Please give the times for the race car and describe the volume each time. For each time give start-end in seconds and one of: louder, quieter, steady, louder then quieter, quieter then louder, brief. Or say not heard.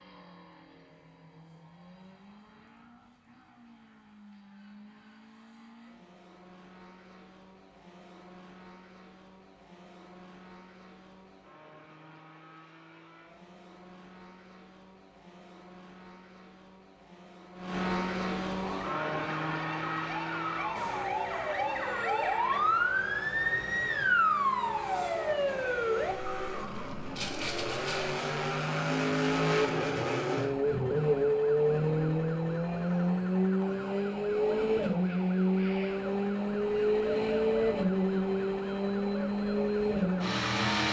0.0-40.8 louder.